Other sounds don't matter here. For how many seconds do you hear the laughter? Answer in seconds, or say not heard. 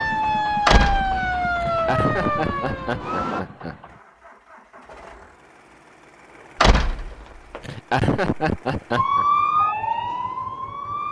4 s.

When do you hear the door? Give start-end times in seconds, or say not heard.
0.7-1.2, 6.6-7.6.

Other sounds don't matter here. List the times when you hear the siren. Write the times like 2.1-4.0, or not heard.
0.0-3.5, 8.9-11.0.